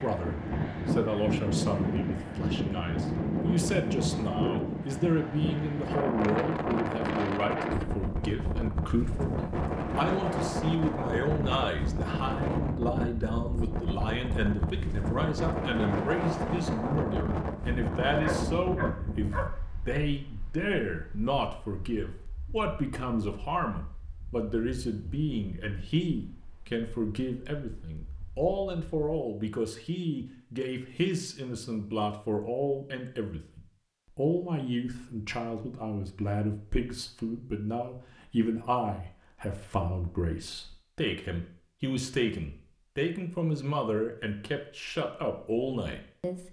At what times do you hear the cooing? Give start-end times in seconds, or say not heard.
not heard.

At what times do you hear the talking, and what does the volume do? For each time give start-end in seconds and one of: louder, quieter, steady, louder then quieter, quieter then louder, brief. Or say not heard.
0.0-46.4 steady.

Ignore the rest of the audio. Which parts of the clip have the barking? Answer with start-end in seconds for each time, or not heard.
18.2-19.5.